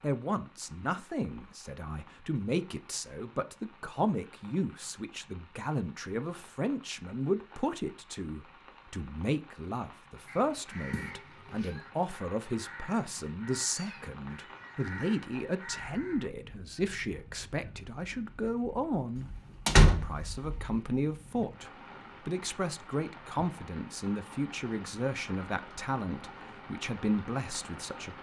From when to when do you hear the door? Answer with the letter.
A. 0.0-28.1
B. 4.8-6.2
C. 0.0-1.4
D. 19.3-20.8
D.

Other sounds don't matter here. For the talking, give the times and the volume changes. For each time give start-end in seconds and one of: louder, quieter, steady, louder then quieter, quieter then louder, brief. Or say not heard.
0.0-28.1 steady.